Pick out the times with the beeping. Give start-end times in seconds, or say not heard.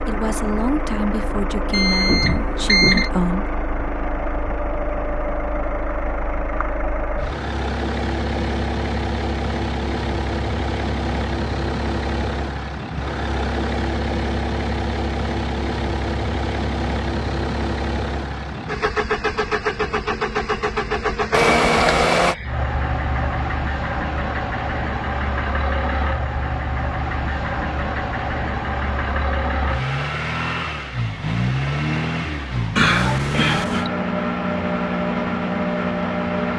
1.7-3.1, 21.3-22.4, 32.8-33.9.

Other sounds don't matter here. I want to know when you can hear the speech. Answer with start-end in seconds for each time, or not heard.
0.1-3.5.